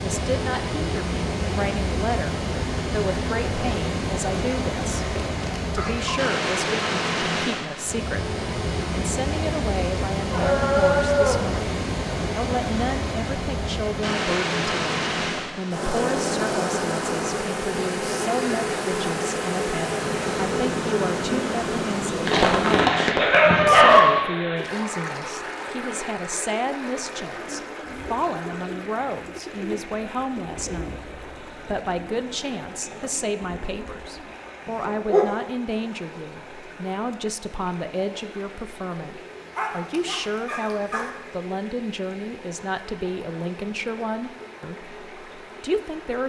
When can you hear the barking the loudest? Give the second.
24 s.